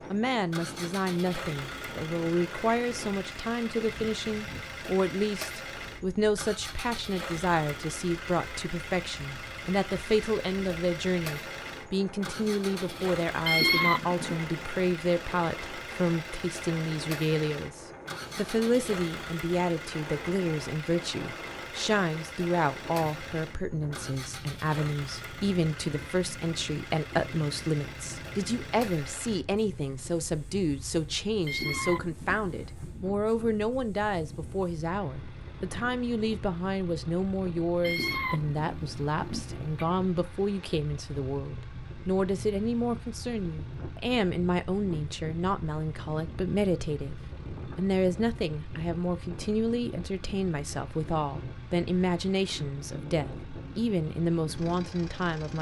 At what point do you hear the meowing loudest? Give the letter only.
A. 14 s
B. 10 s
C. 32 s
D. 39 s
A.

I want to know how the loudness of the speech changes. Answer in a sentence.
The volume of the speech stays about the same.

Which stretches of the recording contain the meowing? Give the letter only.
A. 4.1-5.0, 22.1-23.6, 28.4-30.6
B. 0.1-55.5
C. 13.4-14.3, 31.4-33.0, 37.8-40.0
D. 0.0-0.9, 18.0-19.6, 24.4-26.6
C.